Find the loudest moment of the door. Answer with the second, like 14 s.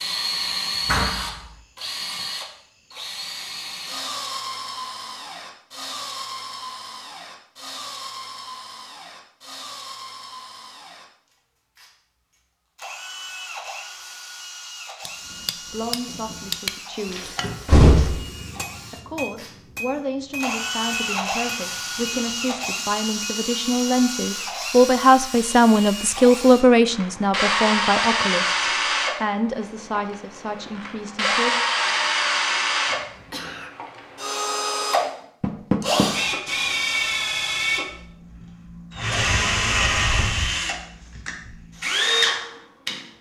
18 s.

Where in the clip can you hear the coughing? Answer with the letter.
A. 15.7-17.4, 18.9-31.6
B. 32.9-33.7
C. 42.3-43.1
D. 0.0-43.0
B.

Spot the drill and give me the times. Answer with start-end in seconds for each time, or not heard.
0.0-43.0.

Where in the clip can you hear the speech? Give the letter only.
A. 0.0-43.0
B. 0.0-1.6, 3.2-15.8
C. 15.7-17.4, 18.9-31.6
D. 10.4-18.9
C.